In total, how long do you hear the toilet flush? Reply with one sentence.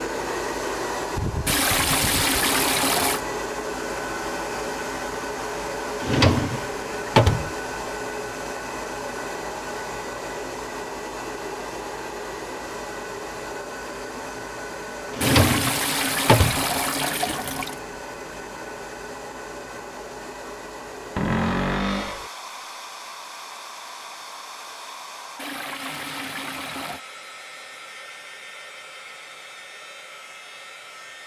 The toilet flush can be heard for 6 seconds in total.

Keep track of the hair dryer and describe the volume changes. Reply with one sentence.
The loudness of the hair dryer goes down.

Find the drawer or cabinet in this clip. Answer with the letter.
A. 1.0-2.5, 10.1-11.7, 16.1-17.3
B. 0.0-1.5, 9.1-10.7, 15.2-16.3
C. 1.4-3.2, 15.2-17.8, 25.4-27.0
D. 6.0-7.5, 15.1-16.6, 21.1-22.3
D.